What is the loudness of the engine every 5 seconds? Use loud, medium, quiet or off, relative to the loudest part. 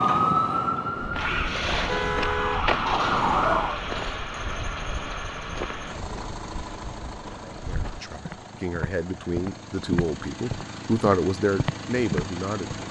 loud, medium, medium.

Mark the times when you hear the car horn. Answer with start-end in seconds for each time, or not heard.
1.9-2.6.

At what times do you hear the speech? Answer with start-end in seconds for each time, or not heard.
7.5-12.8.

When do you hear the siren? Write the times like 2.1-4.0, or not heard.
0.0-3.8.